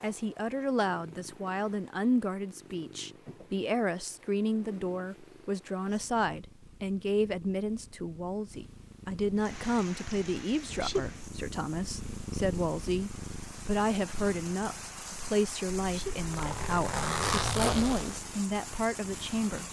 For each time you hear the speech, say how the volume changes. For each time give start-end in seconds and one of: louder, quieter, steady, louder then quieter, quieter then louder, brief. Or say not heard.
0.0-19.6 steady.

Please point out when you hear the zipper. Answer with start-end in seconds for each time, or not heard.
15.8-18.2.